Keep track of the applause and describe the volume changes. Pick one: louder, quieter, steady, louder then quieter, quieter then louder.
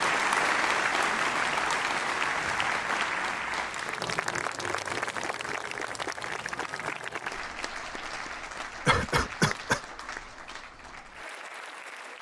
quieter.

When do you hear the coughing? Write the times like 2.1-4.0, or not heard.
8.8-9.8.